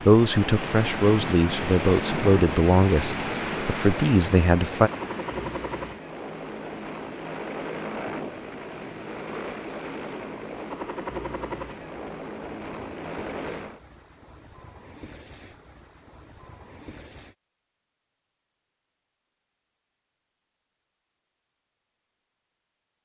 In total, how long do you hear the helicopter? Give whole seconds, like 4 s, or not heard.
14 s.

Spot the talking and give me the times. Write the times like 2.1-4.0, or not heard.
0.1-4.9.